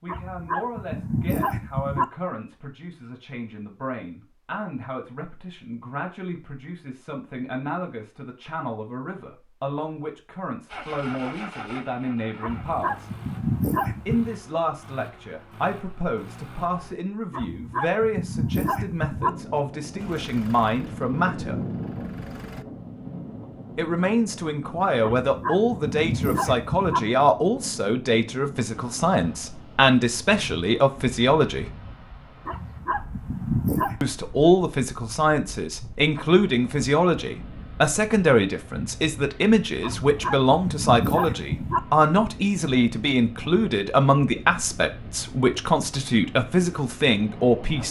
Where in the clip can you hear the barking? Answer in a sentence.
The barking can be heard from 0.1 to 2.0 s, from 12.4 to 14.3 s, from 17.3 to 19.3 s, from 25.0 to 27.0 s, from 32.5 to 34.0 s and from 39.8 to 41.8 s.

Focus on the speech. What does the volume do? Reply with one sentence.
The volume of the speech goes up.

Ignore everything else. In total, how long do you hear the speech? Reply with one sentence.
The speech can be heard for 42 seconds in total.